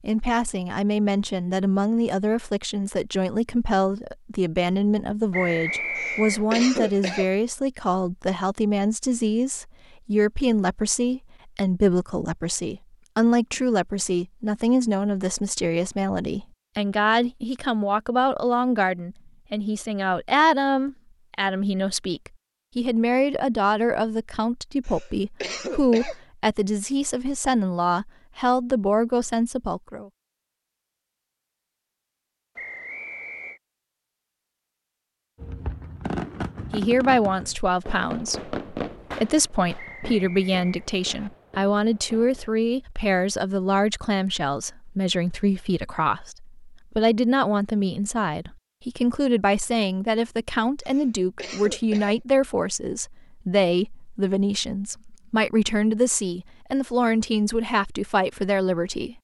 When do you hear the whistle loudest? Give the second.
6 s.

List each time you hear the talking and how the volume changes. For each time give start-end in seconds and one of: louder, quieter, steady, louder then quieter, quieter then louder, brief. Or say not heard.
0.0-30.1 steady
36.7-59.1 steady.